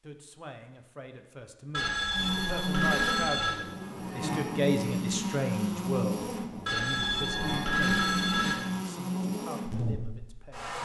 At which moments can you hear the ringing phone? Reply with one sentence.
You can hear the ringing phone from 1.7 to 3.5 s and from 6.7 to 8.6 s.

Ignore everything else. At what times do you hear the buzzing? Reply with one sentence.
You can hear the buzzing from 2.1 to 10.8 s.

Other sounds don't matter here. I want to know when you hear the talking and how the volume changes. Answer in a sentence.
The talking can be heard from 0.0 to 10.8 s, getting louder then quieter.